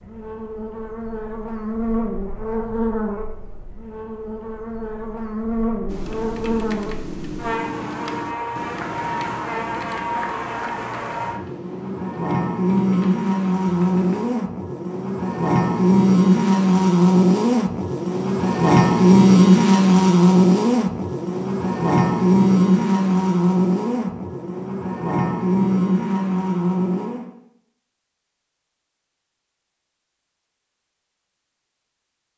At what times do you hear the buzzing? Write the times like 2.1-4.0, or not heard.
0.0-27.3.